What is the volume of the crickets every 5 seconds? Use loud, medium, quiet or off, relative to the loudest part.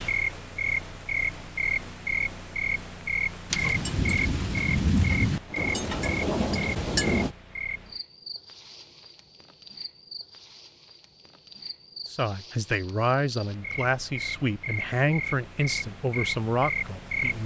loud, medium, medium, loud.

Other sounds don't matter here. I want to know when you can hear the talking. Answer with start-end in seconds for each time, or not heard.
12.1-17.4.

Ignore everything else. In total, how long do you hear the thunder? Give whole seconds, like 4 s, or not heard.
4 s.